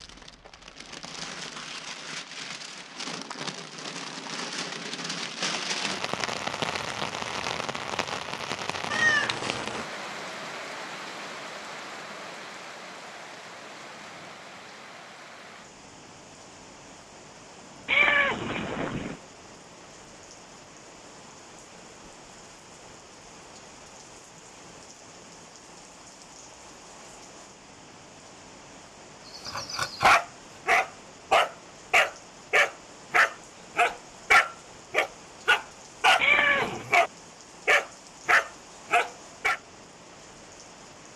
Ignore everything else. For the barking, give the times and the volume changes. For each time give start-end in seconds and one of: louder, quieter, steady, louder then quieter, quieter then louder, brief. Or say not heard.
29.4-39.6 steady.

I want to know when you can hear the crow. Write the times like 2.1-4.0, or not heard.
not heard.